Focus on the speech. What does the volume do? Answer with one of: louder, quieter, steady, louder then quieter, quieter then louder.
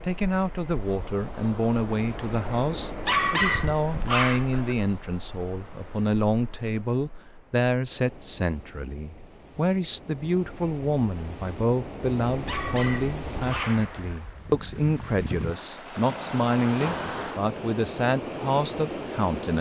steady.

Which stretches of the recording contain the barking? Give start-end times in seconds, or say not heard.
3.0-4.8, 12.4-14.2.